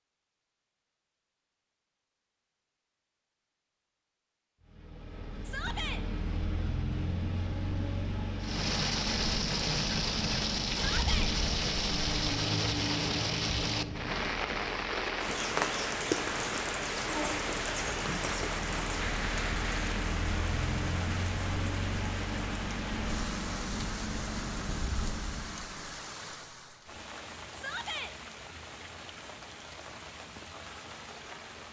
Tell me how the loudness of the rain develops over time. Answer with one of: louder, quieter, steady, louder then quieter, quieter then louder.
quieter.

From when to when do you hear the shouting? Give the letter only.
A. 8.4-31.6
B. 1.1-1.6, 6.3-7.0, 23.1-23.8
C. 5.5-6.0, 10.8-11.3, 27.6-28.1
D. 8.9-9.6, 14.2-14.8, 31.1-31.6
C.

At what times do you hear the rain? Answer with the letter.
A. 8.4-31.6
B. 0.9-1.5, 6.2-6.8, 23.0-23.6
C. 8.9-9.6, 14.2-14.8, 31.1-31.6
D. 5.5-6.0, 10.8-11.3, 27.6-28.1
A.